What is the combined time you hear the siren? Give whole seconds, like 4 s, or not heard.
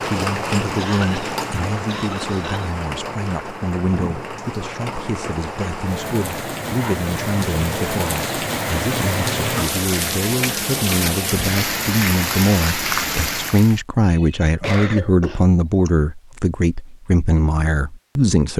not heard.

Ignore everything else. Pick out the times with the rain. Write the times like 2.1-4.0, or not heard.
0.0-13.8.